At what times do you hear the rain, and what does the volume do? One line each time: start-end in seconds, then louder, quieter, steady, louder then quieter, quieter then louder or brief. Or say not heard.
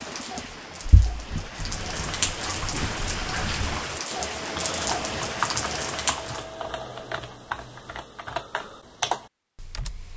0.0-6.5 louder.